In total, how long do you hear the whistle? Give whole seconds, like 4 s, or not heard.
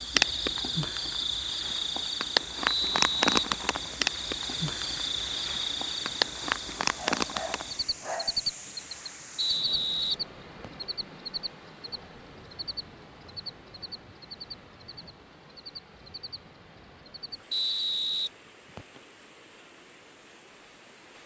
4 s.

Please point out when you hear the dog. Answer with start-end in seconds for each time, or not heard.
6.8-8.4.